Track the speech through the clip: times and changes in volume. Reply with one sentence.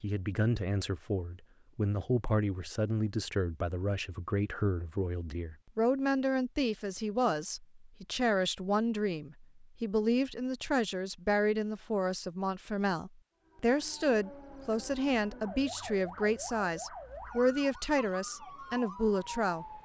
You can hear the speech from 0.0 to 19.8 s, at a steady volume.